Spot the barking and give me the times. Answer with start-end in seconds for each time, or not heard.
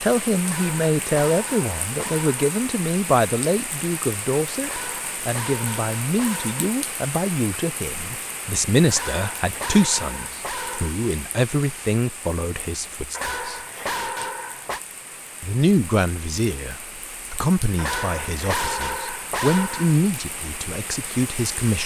0.5-2.5, 4.6-6.8, 8.9-10.9, 13.1-14.8, 17.8-20.1.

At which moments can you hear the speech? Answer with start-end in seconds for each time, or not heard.
0.0-13.6, 15.4-21.8.